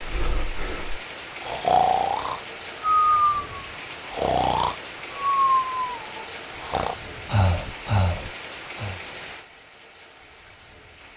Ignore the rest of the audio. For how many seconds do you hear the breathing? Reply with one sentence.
The breathing can be heard for 9 seconds in total.